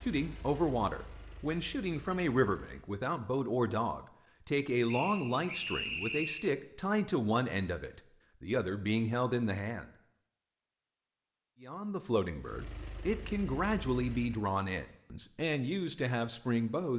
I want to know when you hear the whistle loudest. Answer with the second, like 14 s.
6 s.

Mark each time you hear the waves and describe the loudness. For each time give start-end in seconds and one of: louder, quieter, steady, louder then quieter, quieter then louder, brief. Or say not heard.
not heard.